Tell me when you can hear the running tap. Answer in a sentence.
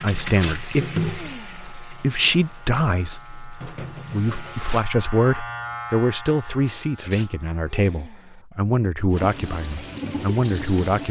You can hear the running tap from 0.0 to 4.8 s and from 9.1 to 11.0 s.